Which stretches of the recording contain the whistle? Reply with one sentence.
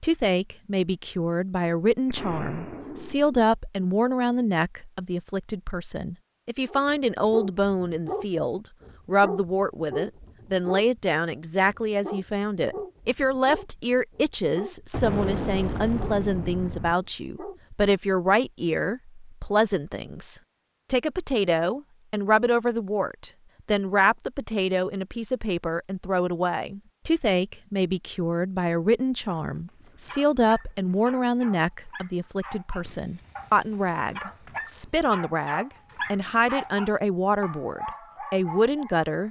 You can't hear the whistle here.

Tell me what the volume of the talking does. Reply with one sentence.
The loudness of the talking stays about the same.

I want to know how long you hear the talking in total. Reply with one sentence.
The talking can be heard for 39 seconds in total.